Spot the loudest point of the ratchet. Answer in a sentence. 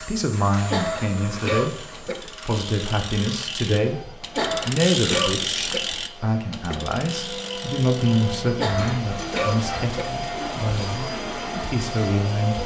The loudest moment of the ratchet is at 5 seconds.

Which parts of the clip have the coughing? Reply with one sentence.
The coughing can be heard from 0.7 to 2.1 s, from 4.3 to 5.8 s and from 8.6 to 10.1 s.